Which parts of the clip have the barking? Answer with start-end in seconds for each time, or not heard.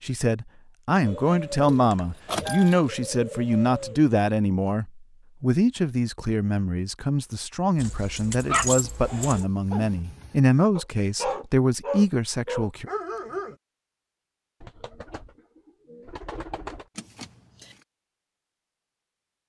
8.4-13.6.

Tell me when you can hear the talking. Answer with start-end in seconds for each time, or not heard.
0.0-12.8.